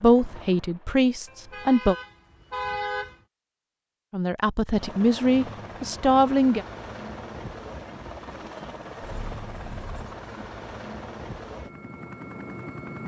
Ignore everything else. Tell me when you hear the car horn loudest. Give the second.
3 s.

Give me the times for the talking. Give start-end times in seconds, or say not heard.
0.0-1.9, 4.1-6.7.